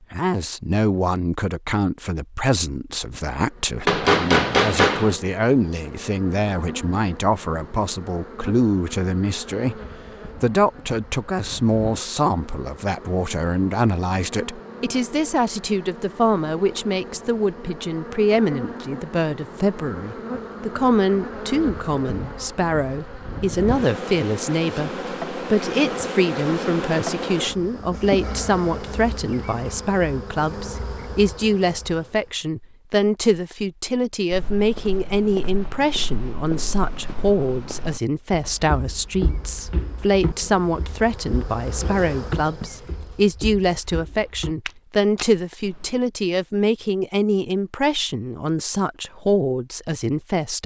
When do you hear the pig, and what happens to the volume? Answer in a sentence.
The pig can't be heard in this clip.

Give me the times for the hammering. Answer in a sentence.
You can hear the hammering from 3.9 to 5.2 s.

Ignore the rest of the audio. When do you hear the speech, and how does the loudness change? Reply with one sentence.
The speech can be heard from 0.1 to 50.6 s, at a steady volume.